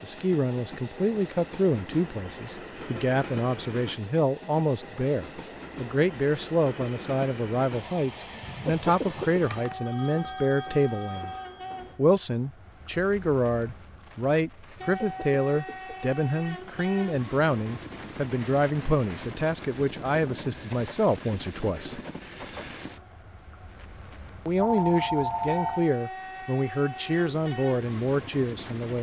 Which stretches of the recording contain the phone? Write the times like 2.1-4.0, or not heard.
9.4-11.9, 24.6-25.9.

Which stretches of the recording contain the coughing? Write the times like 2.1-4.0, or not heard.
8.4-9.4, 14.8-16.1.